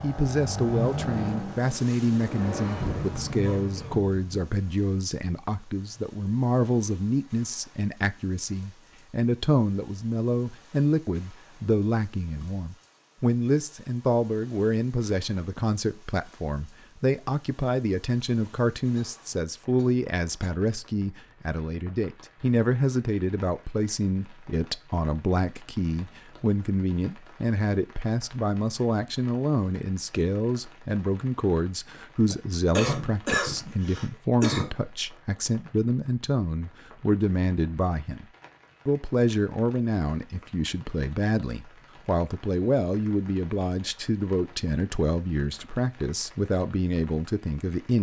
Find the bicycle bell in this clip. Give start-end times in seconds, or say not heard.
not heard.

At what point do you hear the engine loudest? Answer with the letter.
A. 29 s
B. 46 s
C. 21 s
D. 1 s
D.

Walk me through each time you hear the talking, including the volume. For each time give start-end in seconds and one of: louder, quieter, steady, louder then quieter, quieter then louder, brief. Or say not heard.
0.0-38.2 steady
38.9-47.9 steady.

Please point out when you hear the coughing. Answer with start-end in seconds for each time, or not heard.
3.4-4.0, 18.9-20.5, 32.3-34.7.